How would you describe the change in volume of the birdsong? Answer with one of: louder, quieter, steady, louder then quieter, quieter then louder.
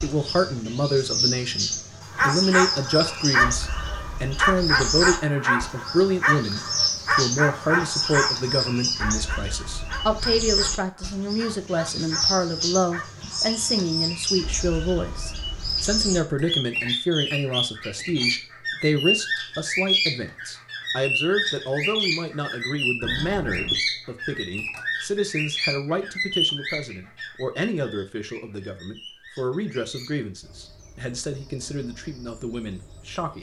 quieter.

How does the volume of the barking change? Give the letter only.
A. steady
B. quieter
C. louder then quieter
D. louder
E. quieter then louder
B.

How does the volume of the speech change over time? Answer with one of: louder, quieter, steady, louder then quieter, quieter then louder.
quieter.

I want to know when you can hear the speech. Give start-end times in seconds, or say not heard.
0.0-33.3.